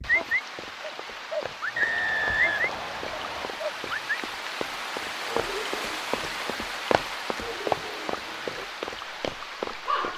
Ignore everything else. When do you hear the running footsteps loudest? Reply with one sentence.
The volume of the running footsteps peaks at 8 seconds.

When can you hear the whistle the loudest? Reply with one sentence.
The loudest moment of the whistle is at 2 seconds.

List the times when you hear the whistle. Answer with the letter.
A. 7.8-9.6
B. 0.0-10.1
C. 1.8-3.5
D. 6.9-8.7
C.